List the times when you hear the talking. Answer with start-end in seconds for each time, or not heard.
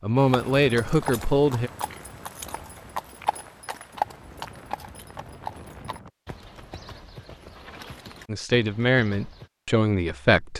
0.0-1.7, 8.2-10.5.